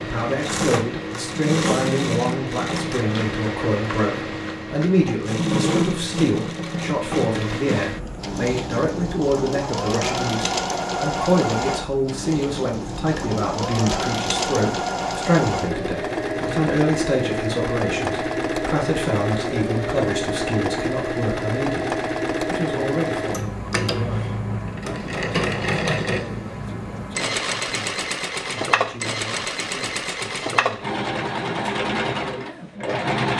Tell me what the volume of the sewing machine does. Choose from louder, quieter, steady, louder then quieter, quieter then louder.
steady.